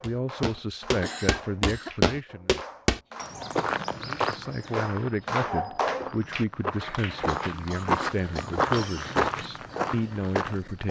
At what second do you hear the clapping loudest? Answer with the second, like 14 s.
5 s.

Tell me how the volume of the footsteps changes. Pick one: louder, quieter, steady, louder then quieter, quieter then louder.
quieter then louder.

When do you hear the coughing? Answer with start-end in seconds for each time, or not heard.
1.0-1.9, 7.2-8.9.